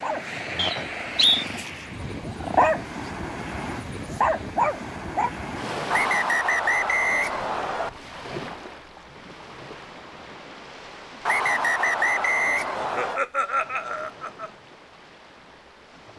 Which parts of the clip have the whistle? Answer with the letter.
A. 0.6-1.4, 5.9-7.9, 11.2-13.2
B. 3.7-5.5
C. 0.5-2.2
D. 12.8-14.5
A.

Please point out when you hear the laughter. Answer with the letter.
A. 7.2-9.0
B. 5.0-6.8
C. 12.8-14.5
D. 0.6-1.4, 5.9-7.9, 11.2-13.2
C.